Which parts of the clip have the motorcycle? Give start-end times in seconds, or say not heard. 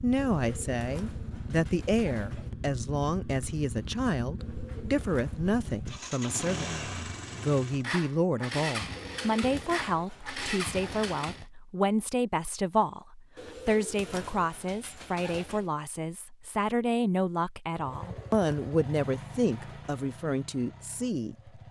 0.0-11.4, 17.8-21.6.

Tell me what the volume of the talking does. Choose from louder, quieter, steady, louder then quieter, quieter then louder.
steady.